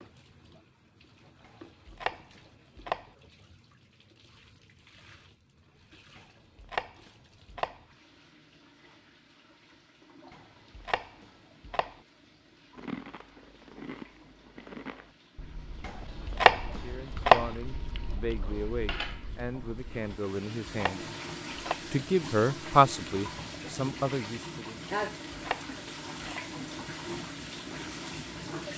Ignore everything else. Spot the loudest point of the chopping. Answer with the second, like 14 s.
17 s.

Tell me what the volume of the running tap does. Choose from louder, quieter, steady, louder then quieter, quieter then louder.
louder.